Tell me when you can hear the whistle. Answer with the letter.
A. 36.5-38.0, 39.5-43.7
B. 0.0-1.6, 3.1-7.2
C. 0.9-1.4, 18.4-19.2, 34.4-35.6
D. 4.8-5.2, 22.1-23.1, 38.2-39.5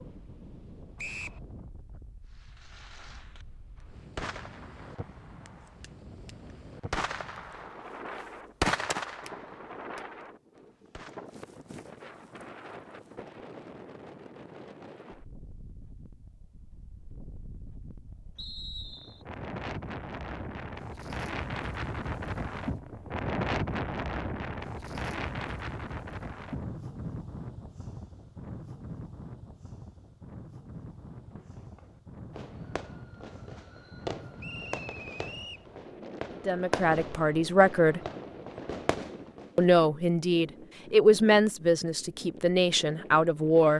C.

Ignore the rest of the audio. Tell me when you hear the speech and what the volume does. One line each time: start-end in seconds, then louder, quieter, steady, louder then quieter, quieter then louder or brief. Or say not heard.
36.5-38.0 brief
39.5-43.7 louder then quieter.